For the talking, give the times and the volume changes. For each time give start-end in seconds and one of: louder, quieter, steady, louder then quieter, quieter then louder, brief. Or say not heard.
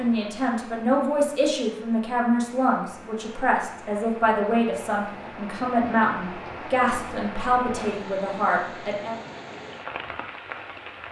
0.0-9.2 steady.